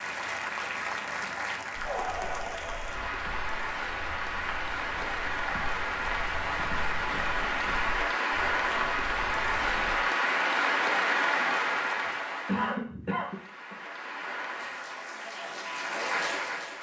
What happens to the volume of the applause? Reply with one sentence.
The loudness of the applause goes up, then down.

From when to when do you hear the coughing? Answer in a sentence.
The coughing can be heard from 12.1 to 13.8 s.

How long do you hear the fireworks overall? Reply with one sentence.
You can't hear the fireworks here.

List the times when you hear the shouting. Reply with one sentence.
The shouting can't be heard in this clip.